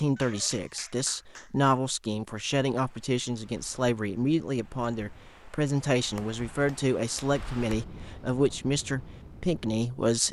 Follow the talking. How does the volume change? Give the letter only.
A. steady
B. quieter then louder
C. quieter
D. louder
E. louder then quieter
A.